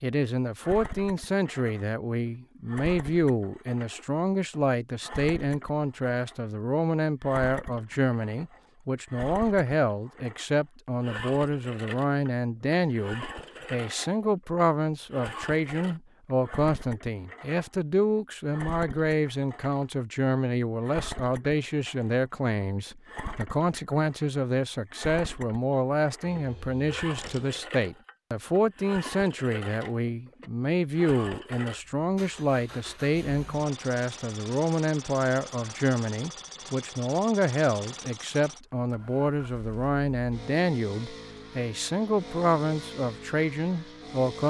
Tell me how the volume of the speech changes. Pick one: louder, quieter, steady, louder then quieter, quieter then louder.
steady.